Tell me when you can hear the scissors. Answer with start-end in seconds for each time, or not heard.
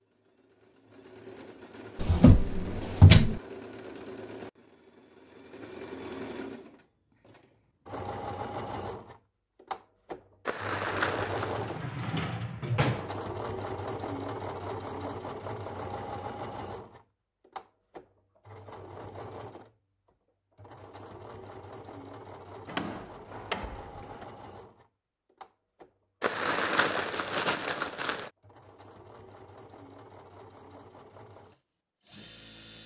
not heard.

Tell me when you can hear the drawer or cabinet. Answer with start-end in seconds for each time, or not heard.
1.9-3.4, 11.6-13.1, 22.6-24.2.